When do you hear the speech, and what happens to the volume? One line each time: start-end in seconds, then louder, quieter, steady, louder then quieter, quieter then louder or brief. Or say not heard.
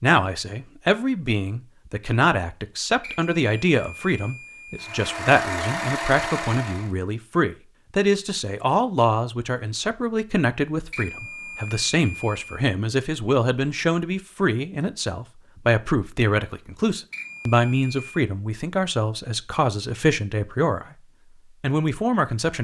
0.0-22.5 steady.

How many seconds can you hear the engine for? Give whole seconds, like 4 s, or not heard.
2 s.